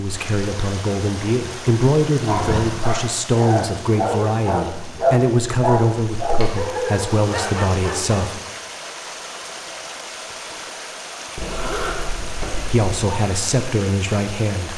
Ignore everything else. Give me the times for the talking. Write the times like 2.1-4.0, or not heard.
0.0-8.4, 12.2-14.7.